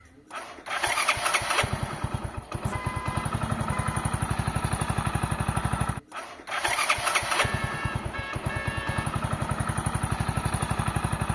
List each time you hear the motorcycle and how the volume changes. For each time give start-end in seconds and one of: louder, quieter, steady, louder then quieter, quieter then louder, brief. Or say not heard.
0.1-11.3 steady.